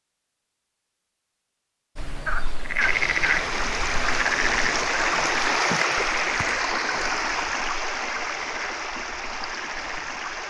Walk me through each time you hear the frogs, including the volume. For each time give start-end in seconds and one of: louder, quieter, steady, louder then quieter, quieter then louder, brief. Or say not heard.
1.9-10.4 quieter.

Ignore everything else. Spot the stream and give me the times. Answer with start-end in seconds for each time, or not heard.
2.8-10.4.